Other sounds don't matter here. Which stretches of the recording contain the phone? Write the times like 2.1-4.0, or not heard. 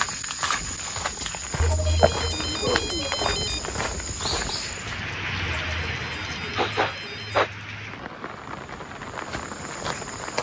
1.6-3.6, 5.7-7.5.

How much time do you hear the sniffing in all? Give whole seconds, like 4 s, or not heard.
2 s.